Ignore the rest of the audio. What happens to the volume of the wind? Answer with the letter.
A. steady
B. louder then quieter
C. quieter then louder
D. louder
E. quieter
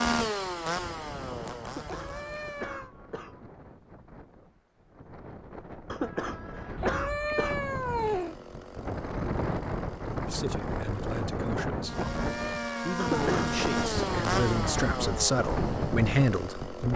D.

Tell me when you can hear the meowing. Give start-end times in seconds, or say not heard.
1.8-3.0, 6.8-8.3, 11.9-13.2.